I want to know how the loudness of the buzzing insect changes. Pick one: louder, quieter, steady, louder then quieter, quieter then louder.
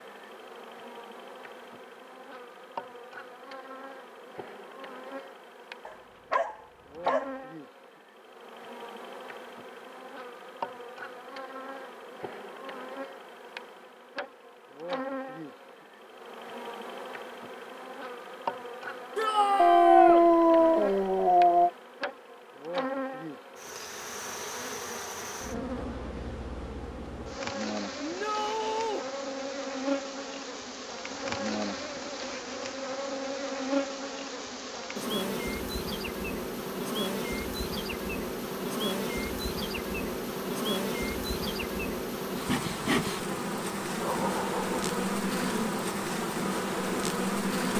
louder.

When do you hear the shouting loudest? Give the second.
20 s.